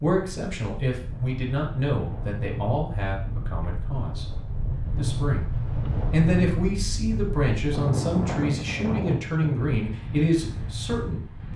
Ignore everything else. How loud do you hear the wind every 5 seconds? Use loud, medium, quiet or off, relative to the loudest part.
medium, loud, medium.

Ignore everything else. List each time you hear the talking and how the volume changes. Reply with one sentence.
The talking can be heard from 0.0 to 4.2 s, getting quieter; briefly from 5.0 to 5.5 s; and from 6.1 to 11.5 s, at a steady volume.